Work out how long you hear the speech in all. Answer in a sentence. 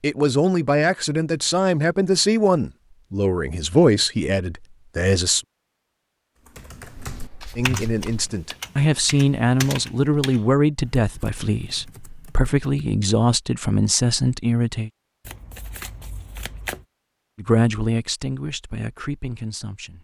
The speech can be heard for 15 seconds in total.